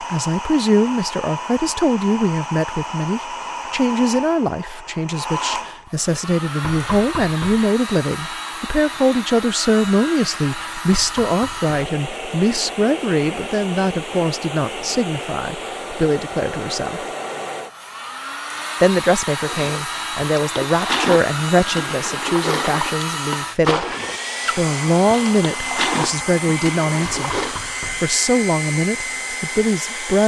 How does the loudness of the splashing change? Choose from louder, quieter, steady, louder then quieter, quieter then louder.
quieter then louder.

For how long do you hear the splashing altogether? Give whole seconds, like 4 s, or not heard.
8 s.